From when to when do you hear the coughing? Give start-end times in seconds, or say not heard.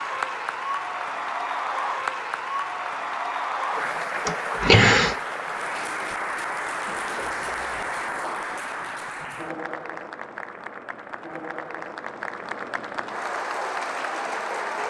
4.2-5.2.